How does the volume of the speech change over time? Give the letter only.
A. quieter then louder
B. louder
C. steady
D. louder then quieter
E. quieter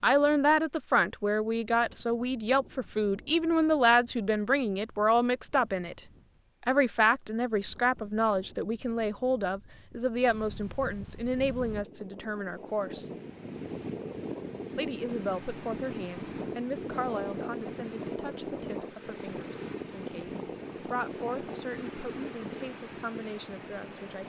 E.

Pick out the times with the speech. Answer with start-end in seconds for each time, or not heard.
0.0-6.0, 6.7-13.1, 14.8-24.2.